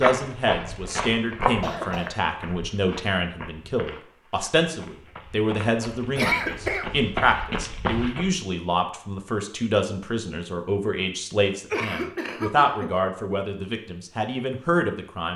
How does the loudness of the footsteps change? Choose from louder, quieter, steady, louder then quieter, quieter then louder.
quieter then louder.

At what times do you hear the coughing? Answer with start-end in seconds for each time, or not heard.
1.4-2.1, 6.2-6.9, 11.7-12.9.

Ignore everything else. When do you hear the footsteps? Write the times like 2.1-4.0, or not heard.
0.0-8.4.